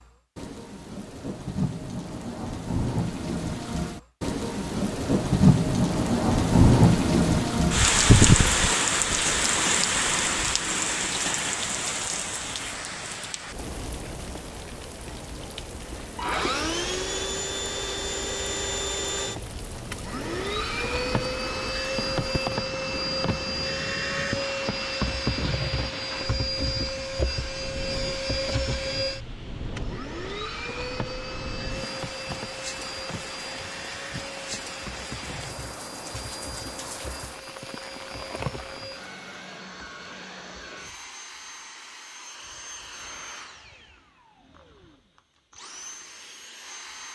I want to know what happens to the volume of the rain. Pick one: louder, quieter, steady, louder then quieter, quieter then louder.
quieter.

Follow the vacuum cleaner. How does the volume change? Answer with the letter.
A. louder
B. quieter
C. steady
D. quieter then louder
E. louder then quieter
B.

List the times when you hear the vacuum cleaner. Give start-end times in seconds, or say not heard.
16.0-47.1.